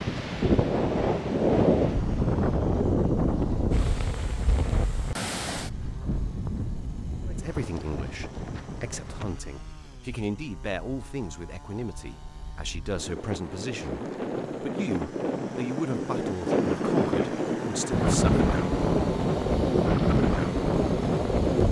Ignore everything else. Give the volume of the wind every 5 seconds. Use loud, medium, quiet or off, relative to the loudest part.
loud, quiet, medium, loud, loud.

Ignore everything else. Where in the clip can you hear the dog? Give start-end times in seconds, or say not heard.
not heard.